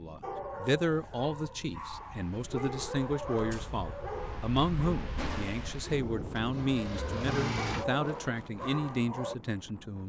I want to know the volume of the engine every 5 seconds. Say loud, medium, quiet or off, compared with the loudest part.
off, loud.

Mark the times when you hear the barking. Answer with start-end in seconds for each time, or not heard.
0.2-9.3.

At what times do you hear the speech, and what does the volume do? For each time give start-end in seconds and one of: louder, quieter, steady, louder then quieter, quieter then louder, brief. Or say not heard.
0.0-10.0 steady.